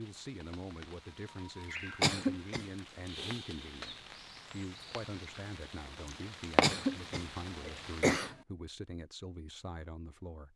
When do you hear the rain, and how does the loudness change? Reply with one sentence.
The rain can be heard from 0.0 to 8.2 s, getting louder.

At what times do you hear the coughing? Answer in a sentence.
You can hear the coughing from 2.0 to 2.6 s and from 6.6 to 8.3 s.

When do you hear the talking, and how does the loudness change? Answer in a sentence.
The talking can be heard from 0.0 to 10.5 s, at a steady volume.